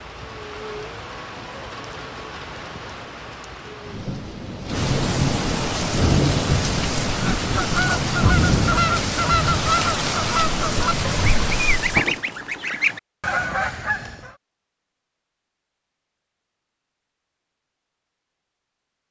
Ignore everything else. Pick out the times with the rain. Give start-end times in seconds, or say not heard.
0.0-12.2.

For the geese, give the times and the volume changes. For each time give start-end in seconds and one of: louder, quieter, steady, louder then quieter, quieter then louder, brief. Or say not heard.
7.2-14.3 steady.